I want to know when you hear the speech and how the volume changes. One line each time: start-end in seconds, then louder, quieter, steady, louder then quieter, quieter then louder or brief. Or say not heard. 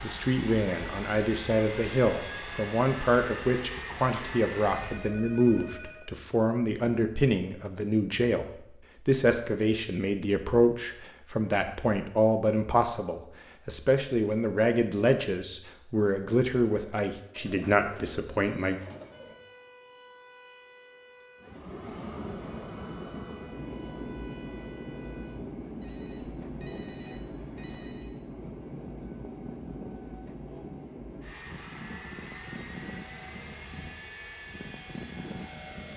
0.0-18.8 steady.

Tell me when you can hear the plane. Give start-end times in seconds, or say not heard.
0.0-5.2, 21.4-35.9.